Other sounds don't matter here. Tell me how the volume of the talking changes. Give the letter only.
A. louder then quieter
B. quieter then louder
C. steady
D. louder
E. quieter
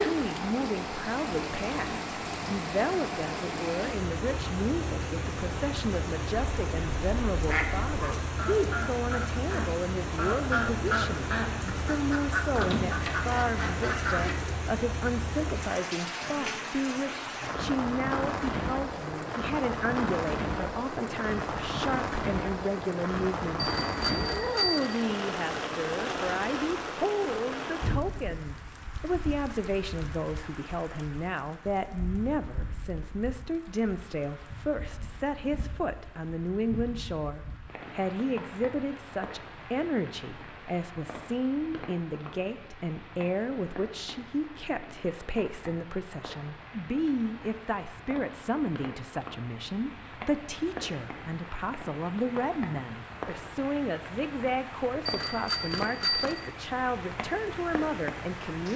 C.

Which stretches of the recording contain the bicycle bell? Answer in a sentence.
The bicycle bell can be heard from 23.6 to 25.1 s and from 55.0 to 56.5 s.